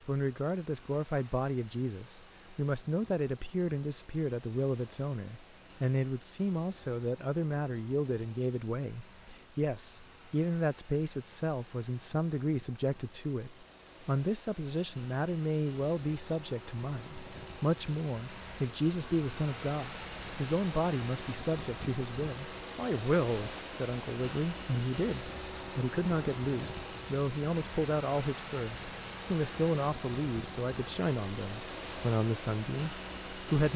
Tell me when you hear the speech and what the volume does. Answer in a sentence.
The speech can be heard from 0.1 to 33.7 s, at a steady volume.